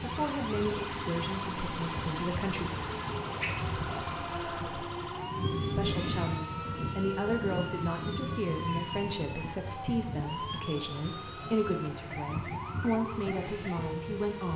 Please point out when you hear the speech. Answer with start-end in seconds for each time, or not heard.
0.0-2.6, 5.7-14.5.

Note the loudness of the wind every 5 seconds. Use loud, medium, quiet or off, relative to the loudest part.
loud, loud, medium.